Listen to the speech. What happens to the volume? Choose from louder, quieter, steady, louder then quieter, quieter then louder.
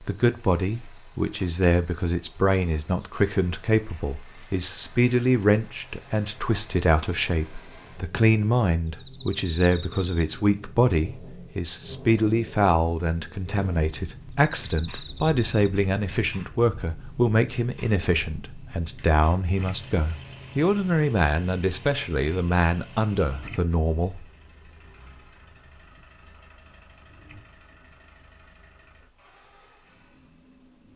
steady.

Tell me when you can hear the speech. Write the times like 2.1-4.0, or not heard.
0.0-24.2.